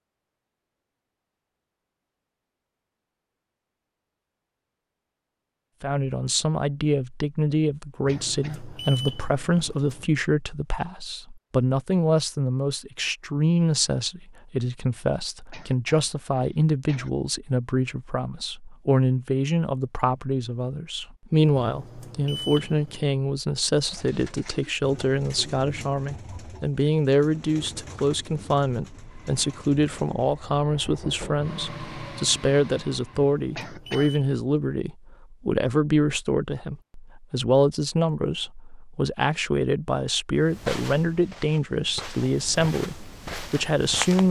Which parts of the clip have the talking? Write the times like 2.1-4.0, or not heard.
5.8-44.2.